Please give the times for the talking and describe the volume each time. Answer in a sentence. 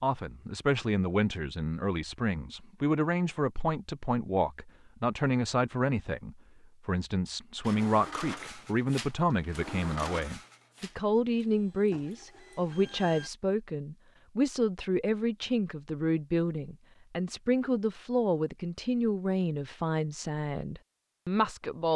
The talking can be heard from 0.0 to 21.9 s, at a steady volume.